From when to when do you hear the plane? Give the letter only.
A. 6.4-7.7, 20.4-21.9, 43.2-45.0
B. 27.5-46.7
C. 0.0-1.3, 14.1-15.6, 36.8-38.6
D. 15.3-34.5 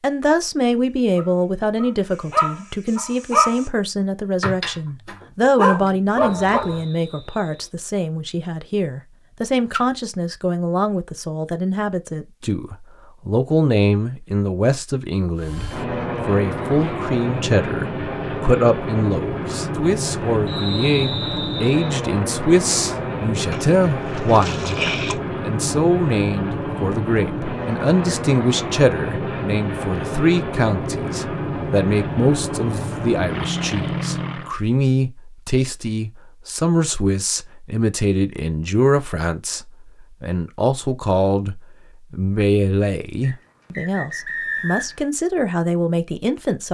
D.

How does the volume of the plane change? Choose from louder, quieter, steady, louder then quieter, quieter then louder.
steady.